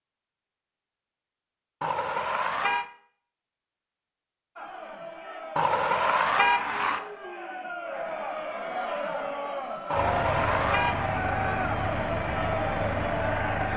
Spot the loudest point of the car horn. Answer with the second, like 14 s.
6 s.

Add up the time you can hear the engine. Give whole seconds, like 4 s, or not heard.
4 s.